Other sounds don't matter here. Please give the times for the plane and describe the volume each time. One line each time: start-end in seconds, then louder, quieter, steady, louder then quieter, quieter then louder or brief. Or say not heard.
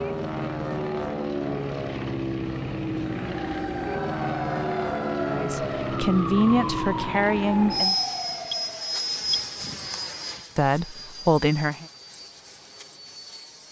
0.0-13.6 quieter.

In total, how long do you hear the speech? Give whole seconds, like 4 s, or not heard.
4 s.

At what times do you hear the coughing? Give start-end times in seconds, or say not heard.
not heard.